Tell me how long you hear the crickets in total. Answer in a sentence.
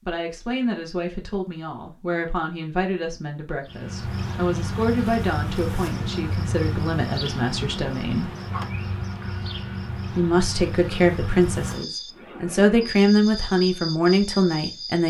The crickets can be heard for 11 seconds in total.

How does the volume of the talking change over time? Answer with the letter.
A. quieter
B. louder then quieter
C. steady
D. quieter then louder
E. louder
E.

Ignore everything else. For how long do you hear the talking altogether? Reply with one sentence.
You can hear the talking for 13 seconds altogether.